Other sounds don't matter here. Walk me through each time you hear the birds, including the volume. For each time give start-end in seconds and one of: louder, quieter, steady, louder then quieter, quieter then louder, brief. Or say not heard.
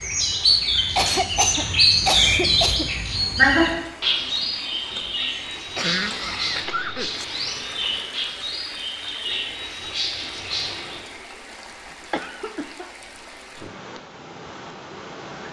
0.0-11.0 quieter.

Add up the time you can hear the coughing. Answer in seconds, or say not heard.
5 s.